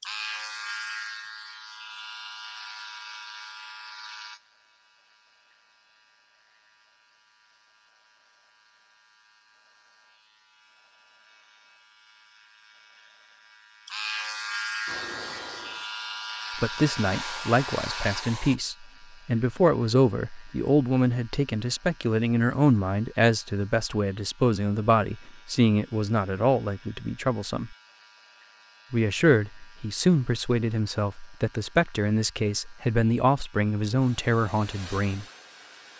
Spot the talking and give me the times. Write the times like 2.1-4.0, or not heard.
16.6-27.8, 28.9-35.2.